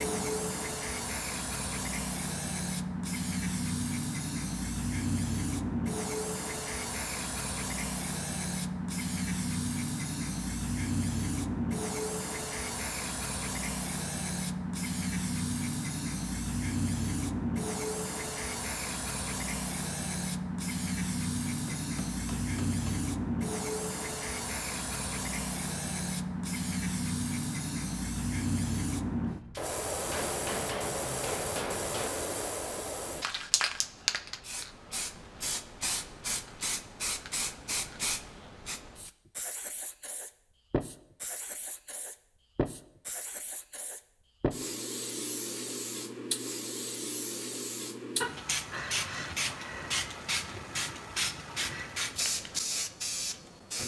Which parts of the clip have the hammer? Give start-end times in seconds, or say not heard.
21.4-23.1, 30.1-32.1.